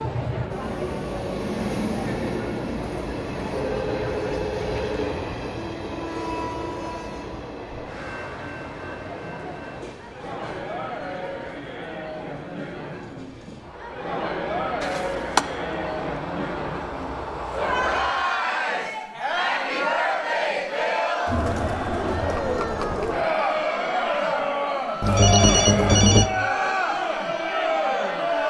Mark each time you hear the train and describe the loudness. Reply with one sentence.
The train can be heard from 0.0 to 18.2 s, getting quieter then louder.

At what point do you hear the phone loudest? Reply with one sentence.
The volume of the phone peaks at 26 seconds.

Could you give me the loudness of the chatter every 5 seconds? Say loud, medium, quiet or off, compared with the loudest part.
medium, quiet, medium, loud, loud, loud.